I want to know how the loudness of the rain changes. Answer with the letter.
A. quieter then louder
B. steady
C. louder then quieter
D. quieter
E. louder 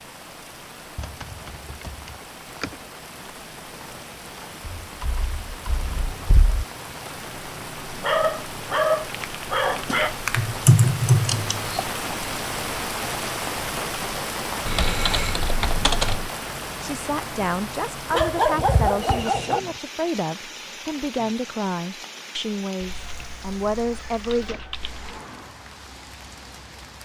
C.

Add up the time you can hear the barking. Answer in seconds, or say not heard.
4 s.